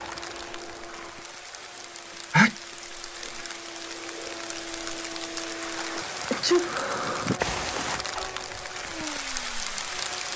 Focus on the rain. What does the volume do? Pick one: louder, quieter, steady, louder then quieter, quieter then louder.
louder.